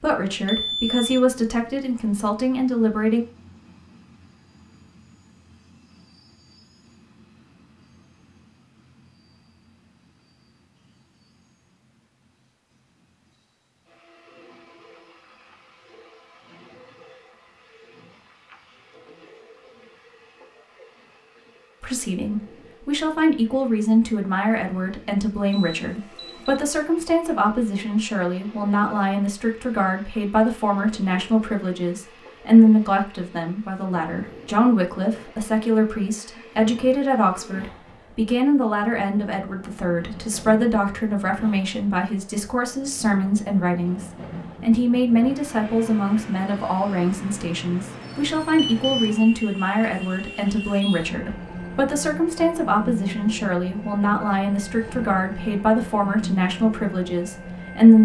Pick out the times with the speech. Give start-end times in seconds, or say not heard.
0.0-3.2, 21.8-58.0.